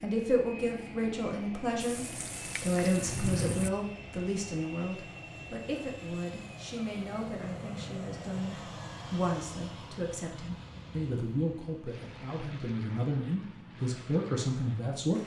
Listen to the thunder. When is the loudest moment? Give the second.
3 s.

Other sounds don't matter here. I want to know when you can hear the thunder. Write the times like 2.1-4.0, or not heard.
1.8-3.7.